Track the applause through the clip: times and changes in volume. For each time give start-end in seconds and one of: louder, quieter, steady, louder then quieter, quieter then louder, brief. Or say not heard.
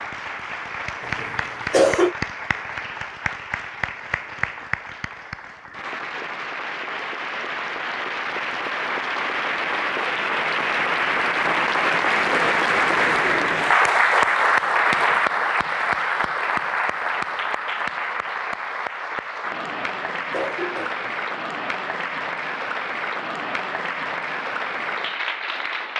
0.0-25.9 louder then quieter.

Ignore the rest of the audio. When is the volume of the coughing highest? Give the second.
2 s.